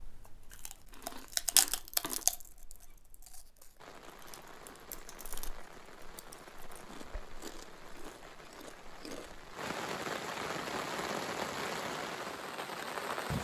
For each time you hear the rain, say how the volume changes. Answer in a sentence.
You can hear the rain from 3.8 to 13.3 s, getting louder.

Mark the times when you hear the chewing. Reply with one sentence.
You can hear the chewing from 0.0 to 9.4 s.